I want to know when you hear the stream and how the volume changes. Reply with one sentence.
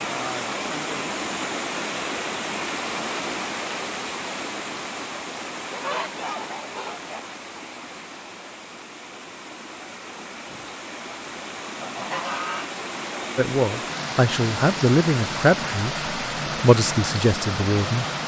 You can hear the stream from 0.0 to 18.2 s, getting quieter then louder.